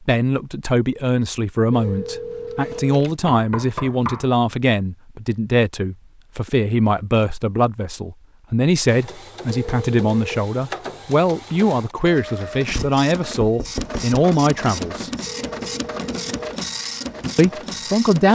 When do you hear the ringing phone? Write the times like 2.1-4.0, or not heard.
1.7-3.2, 9.4-10.4, 15.2-16.6.